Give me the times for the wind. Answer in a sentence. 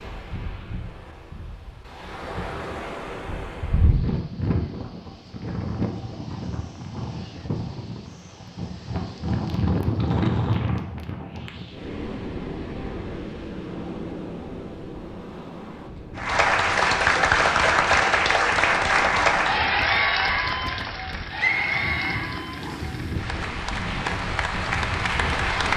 You can hear the wind from 0.0 to 25.7 s.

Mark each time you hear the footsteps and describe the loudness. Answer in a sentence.
The footsteps can't be heard in this clip.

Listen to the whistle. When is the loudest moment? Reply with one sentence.
The volume of the whistle peaks at 22 seconds.